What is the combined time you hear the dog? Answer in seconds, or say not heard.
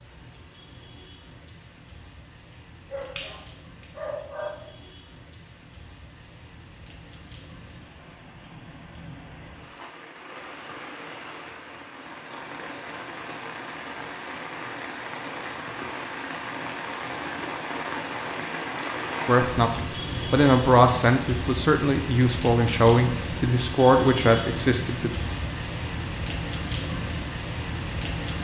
2 s.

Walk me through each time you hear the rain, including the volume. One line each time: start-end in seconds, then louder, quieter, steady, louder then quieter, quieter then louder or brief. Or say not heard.
0.0-28.3 louder.